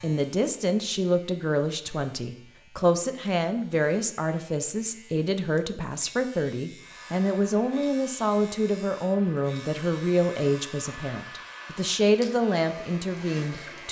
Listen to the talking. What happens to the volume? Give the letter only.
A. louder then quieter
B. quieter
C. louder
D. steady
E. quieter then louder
D.